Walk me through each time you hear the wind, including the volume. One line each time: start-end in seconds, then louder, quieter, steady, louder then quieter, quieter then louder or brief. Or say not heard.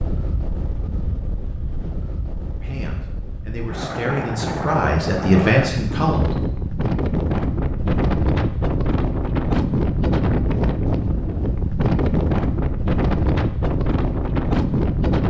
0.0-15.2 louder.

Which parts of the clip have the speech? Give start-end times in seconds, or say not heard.
2.6-6.3.